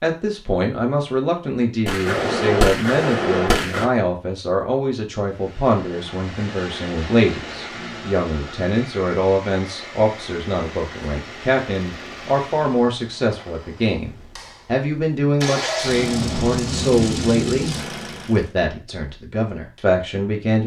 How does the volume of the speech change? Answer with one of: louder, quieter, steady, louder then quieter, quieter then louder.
steady.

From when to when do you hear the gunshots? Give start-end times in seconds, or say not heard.
1.9-3.9.